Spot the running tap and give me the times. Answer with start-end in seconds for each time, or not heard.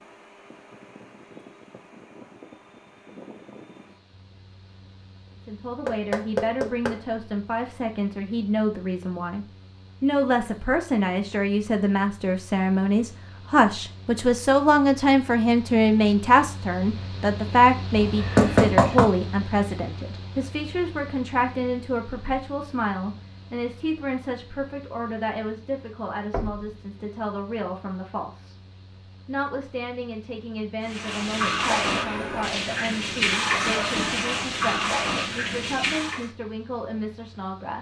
30.8-36.3.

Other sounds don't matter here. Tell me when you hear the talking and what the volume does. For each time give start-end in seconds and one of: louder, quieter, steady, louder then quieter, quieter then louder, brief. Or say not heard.
5.5-28.6 louder then quieter
29.2-37.7 steady.